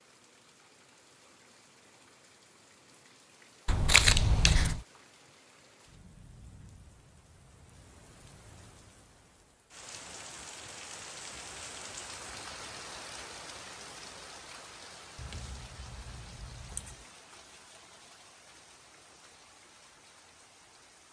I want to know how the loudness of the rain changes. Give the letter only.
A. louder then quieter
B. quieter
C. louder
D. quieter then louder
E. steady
A.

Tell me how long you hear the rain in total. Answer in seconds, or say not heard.
21 s.